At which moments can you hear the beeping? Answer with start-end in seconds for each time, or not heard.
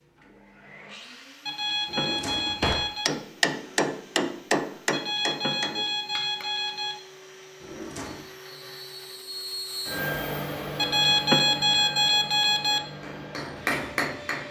1.4-3.1, 4.9-7.0, 10.8-12.8.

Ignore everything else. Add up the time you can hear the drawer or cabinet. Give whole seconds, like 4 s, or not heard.
2 s.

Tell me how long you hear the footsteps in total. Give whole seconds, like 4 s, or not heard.
not heard.